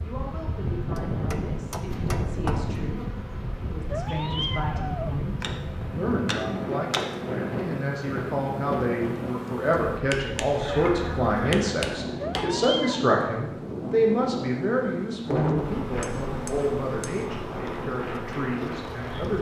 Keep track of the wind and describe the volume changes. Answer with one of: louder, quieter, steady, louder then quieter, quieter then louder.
steady.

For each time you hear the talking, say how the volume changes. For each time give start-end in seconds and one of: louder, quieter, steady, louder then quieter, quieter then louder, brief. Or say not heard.
0.0-19.3 louder then quieter.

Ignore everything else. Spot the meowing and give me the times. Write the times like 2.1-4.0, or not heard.
3.9-5.2, 12.2-13.1.